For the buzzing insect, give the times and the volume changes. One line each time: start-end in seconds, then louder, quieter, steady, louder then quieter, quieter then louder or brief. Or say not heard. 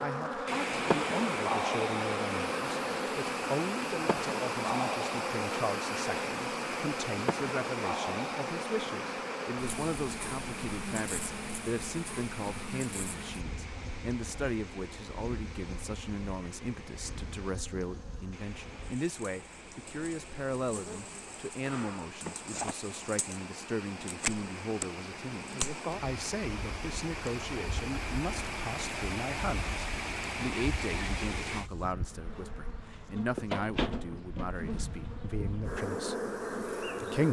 0.0-37.2 quieter then louder.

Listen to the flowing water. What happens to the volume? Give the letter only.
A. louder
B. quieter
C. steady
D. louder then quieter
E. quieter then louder
E.